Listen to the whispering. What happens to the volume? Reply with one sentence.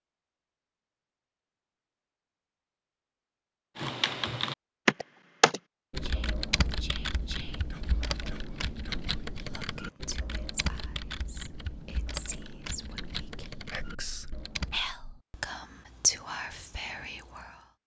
The volume of the whispering goes up.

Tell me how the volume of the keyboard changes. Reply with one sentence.
The volume of the keyboard goes down.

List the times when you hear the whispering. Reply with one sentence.
You can hear the whispering from 6.0 to 17.6 s.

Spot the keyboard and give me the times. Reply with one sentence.
The keyboard can be heard from 3.8 to 14.8 s.